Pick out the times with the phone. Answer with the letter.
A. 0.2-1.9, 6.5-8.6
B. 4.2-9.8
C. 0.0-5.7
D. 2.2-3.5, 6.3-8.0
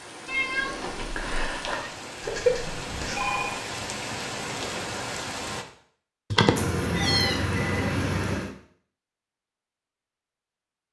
D.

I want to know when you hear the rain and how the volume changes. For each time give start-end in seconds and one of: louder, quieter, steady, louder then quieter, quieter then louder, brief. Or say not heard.
0.0-5.7 louder.